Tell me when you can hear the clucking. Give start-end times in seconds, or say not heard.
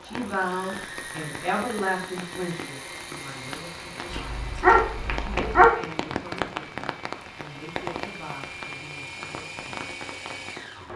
not heard.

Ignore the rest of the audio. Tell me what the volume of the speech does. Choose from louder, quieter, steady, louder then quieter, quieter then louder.
quieter.